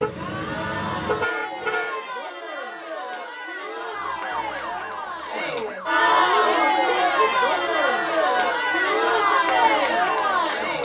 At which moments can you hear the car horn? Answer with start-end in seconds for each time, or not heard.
0.0-2.0.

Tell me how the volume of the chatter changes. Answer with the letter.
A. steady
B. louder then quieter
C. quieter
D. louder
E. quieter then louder
D.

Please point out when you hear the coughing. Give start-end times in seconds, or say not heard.
not heard.